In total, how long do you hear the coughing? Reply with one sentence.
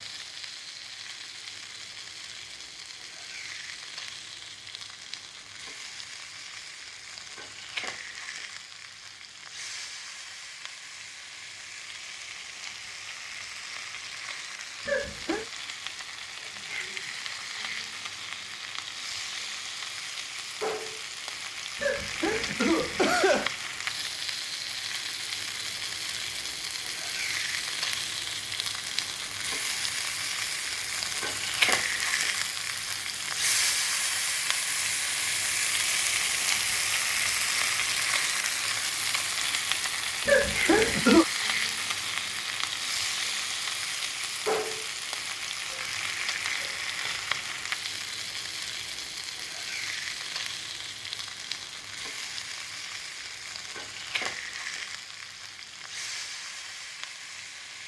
You can hear the coughing for 3 seconds altogether.